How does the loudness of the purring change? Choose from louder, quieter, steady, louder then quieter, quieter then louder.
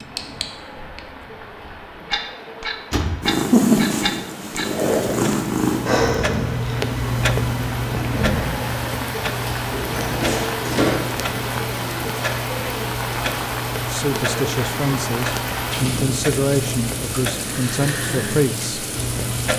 quieter.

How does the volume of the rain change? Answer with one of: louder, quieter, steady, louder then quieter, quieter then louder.
louder.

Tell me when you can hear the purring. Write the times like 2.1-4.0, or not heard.
3.2-8.4.